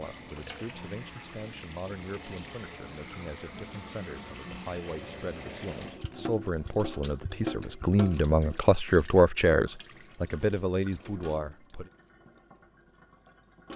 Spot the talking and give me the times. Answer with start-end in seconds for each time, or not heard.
0.0-11.9.